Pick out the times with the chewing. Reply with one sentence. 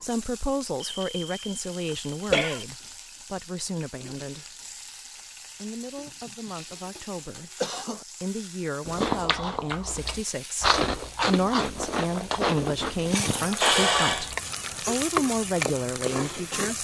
You can hear the chewing from 8.8 to 15.2 s.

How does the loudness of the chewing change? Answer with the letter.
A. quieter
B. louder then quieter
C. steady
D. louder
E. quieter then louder
B.